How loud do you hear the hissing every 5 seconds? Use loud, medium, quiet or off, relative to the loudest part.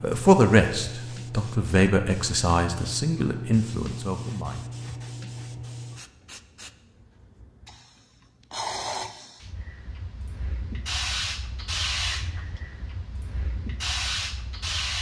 loud, medium, loud.